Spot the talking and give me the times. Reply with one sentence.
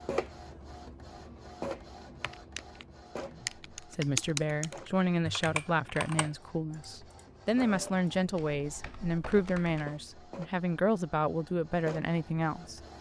The talking can be heard from 3.3 to 12.8 s.